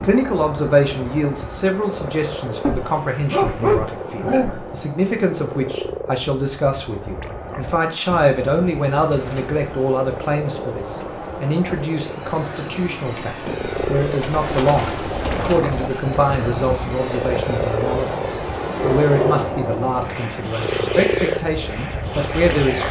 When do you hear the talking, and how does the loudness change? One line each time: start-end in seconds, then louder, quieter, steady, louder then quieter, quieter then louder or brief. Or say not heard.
0.0-22.8 steady.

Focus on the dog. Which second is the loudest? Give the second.
4 s.